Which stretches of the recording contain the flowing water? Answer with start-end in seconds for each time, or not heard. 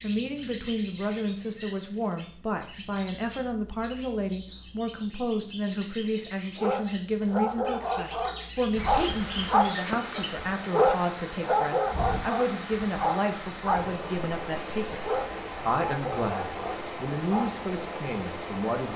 8.8-18.9.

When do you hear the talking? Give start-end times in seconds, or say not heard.
0.0-15.1, 15.7-18.9.